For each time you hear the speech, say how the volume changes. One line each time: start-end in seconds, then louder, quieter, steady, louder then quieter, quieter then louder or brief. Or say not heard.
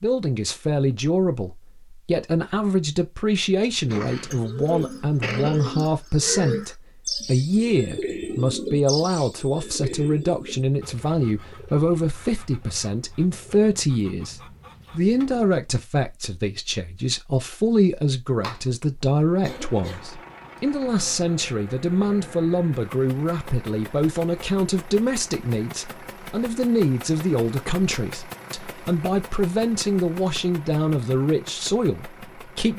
0.0-32.7 steady.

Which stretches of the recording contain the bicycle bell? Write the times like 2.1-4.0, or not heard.
not heard.